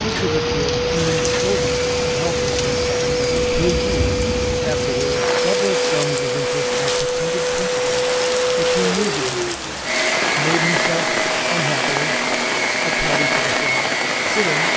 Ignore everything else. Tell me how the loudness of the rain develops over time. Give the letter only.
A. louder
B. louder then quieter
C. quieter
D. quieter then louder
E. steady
E.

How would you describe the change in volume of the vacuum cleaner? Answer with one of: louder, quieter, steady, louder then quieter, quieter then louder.
steady.